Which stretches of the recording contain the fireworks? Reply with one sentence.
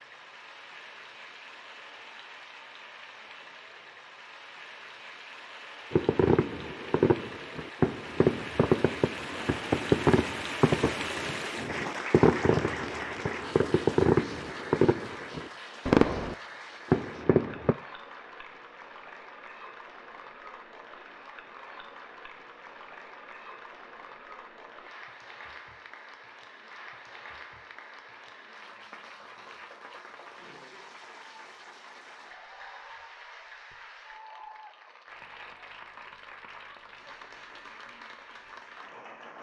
The fireworks can be heard from 5.9 to 17.8 s.